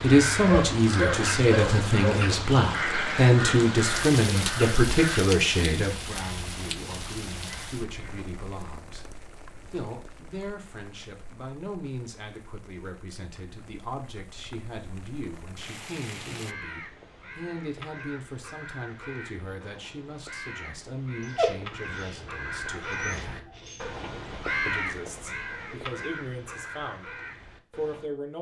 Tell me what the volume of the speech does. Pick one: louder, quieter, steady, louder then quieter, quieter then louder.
quieter.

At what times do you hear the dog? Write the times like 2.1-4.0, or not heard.
0.5-2.2, 21.2-23.9.